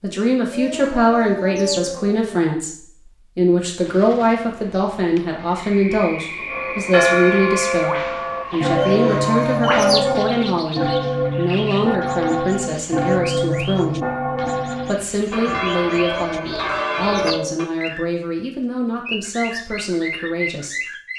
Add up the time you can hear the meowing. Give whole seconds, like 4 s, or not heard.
5 s.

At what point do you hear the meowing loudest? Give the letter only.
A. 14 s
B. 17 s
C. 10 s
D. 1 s
C.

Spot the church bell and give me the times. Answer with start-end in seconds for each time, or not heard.
6.5-17.7.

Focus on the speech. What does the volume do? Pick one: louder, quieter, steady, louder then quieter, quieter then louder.
quieter.